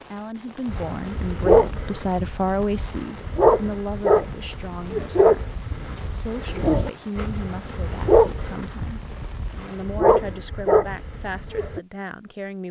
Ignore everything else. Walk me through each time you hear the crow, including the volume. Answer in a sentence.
You can't hear the crow here.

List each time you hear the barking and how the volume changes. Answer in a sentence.
The barking can be heard from 0.7 to 11.8 s, at a steady volume.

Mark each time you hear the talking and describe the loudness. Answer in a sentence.
You can hear the talking from 0.1 to 12.6 s, getting quieter.